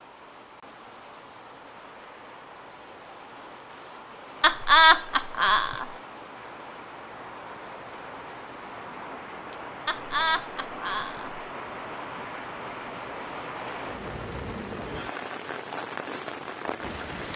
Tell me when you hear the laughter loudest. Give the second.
5 s.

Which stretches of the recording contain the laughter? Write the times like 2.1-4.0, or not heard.
4.4-5.9, 9.8-11.4.